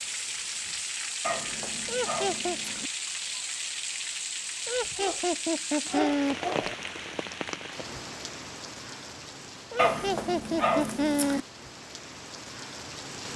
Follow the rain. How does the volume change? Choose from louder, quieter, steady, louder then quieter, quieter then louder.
quieter.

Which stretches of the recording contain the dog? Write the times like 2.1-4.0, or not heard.
1.2-2.9, 4.8-6.8, 9.8-11.4.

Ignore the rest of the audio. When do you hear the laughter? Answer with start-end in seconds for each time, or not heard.
1.9-2.6, 4.7-6.3, 9.7-11.4.